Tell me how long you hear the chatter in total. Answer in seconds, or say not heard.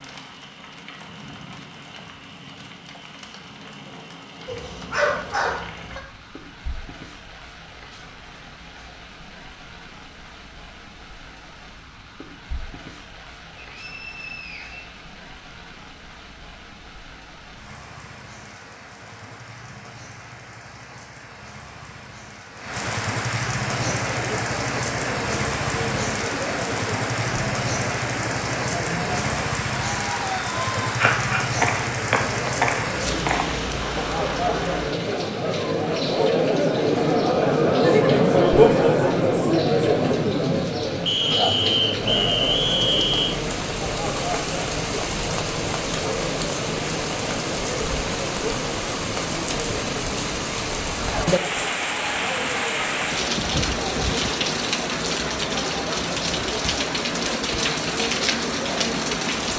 36 s.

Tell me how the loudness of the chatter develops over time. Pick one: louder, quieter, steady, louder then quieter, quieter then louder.
louder then quieter.